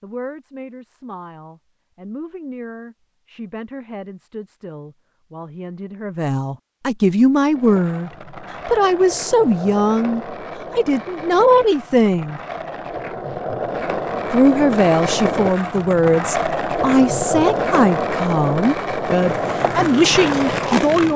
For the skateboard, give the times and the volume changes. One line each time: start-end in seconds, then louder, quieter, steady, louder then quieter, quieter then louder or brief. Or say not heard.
7.5-21.1 louder.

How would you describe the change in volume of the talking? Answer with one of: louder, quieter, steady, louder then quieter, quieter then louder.
louder.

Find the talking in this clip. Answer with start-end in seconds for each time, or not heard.
0.0-12.4, 14.3-21.1.